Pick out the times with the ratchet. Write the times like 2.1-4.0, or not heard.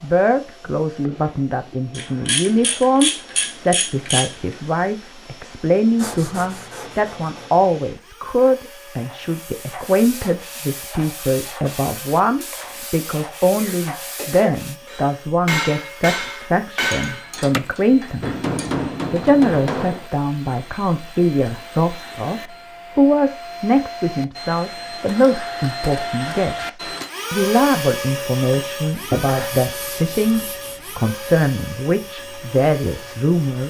1.9-4.3, 17.1-18.9.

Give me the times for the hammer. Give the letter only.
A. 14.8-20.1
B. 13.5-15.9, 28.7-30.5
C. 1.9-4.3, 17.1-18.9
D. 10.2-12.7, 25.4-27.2
A.